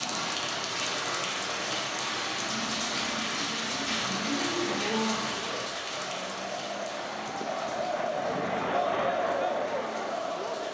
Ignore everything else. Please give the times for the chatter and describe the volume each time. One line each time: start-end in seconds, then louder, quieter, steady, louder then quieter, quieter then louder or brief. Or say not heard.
0.0-10.6 louder.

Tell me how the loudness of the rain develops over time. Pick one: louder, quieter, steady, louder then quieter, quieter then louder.
quieter.